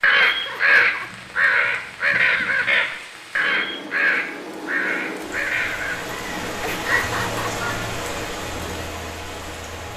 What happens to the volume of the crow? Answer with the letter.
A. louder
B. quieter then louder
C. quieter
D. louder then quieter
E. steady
C.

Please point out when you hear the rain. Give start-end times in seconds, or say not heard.
0.2-9.9.